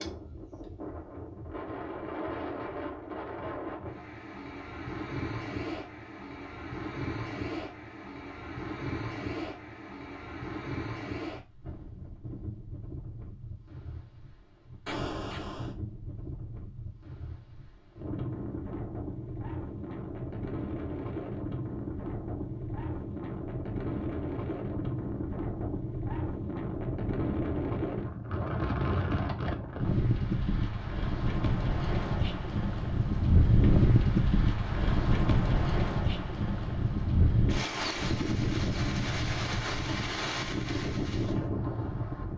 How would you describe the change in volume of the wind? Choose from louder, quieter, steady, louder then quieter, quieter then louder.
louder.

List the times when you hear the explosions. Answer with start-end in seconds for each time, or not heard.
14.8-15.8.